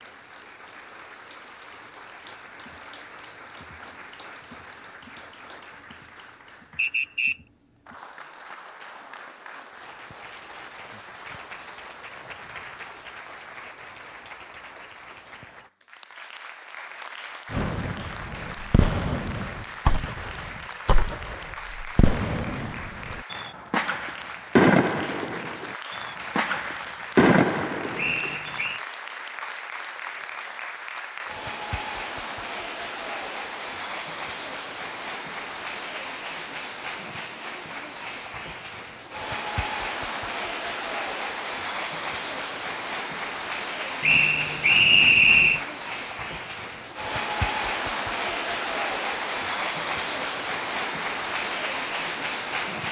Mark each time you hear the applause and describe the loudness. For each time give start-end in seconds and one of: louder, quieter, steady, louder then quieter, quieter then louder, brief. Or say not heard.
0.0-52.8 louder.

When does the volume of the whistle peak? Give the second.
45 s.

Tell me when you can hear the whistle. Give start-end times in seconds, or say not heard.
6.8-7.4, 27.9-28.8, 44.0-45.6.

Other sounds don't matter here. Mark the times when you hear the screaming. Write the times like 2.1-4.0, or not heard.
not heard.